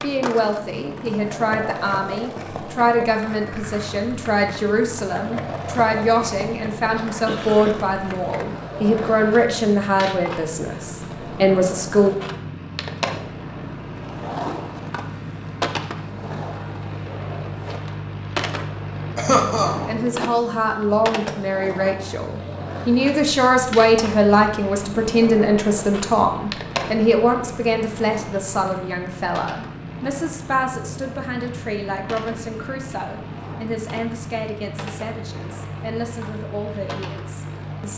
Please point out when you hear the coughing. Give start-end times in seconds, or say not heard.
7.0-8.0, 19.1-19.8.